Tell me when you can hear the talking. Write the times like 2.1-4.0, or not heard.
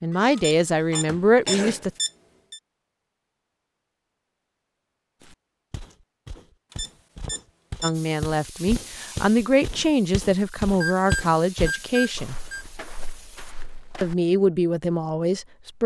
0.0-1.9, 7.8-12.3, 14.0-15.8.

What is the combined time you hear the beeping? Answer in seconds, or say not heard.
5 s.